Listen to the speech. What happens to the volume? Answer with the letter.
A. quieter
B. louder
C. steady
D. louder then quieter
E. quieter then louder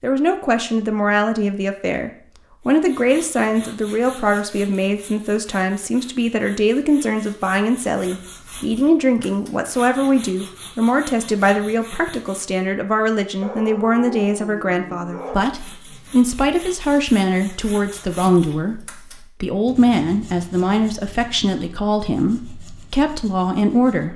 C.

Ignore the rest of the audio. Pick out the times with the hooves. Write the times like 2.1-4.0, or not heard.
not heard.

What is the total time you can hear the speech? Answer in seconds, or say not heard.
24 s.